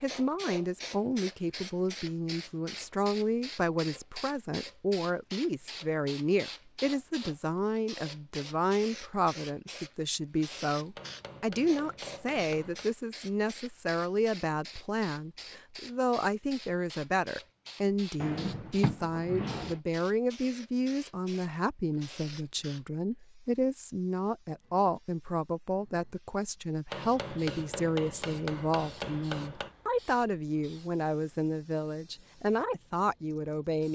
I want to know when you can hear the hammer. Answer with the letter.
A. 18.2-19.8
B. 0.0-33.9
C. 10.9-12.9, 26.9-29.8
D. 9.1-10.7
C.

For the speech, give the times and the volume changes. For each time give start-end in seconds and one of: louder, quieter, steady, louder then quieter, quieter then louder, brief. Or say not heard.
0.0-33.9 steady.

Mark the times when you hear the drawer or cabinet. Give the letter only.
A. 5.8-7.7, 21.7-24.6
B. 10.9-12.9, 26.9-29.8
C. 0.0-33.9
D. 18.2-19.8
D.